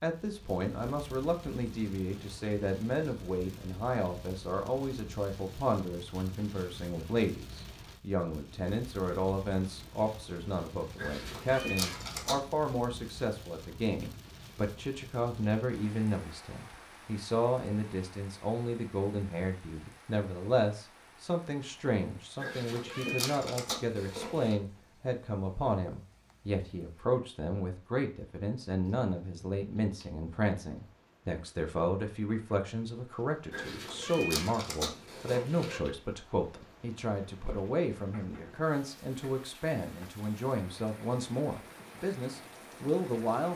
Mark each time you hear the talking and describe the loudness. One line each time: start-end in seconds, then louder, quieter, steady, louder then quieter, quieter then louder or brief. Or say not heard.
0.0-43.5 steady.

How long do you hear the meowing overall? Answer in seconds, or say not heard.
6 s.